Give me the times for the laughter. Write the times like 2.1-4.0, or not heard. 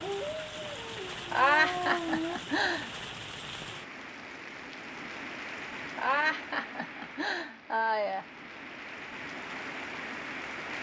1.3-2.9, 6.0-8.2.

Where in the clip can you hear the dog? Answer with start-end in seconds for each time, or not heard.
0.0-2.4.